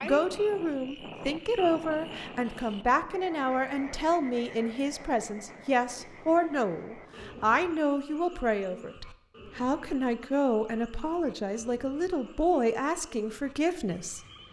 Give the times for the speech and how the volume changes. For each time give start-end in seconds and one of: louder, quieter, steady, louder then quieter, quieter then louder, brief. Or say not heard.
0.0-14.2 steady.